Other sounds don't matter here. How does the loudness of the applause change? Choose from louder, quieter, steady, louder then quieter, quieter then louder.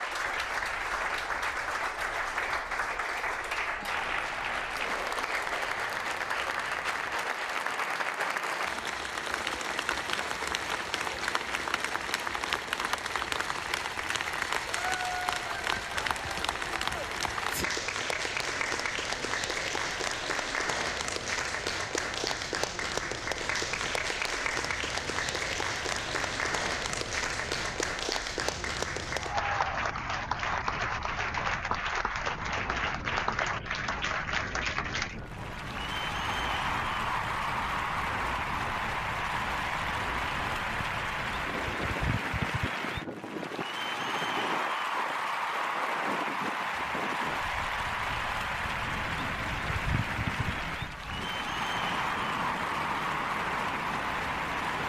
steady.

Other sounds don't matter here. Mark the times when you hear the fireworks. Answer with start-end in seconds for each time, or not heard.
not heard.